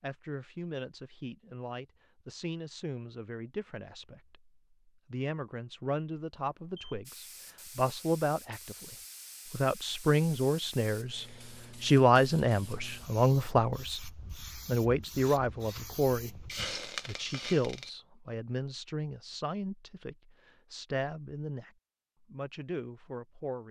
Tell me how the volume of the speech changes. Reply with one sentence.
The loudness of the speech goes up, then down.